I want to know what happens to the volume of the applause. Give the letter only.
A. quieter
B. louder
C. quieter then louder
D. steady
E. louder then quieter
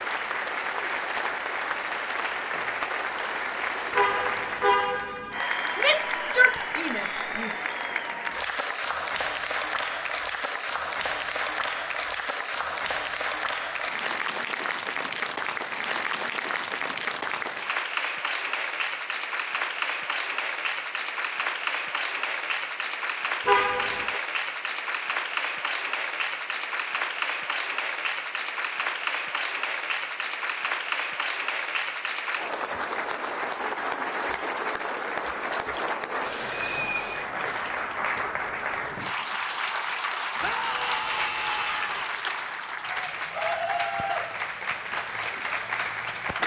D.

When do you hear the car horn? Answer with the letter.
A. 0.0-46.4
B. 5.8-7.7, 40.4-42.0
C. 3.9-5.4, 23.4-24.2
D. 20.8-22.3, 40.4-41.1
C.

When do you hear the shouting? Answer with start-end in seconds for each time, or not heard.
5.8-7.7, 40.4-42.0.